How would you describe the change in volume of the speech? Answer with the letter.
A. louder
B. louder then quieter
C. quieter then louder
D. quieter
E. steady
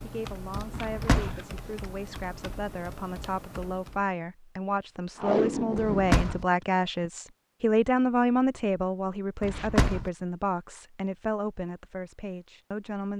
B.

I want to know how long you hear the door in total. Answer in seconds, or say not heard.
2 s.